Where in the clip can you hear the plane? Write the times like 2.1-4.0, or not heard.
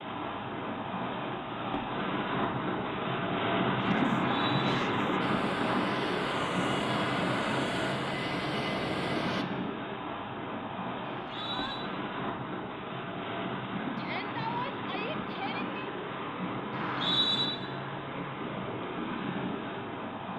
5.2-9.4.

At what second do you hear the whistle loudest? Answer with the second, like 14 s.
17 s.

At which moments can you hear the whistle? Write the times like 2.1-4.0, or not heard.
4.2-4.8, 11.1-11.8, 16.7-17.5.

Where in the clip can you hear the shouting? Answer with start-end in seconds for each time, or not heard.
3.8-5.2, 11.3-11.8, 13.9-15.9.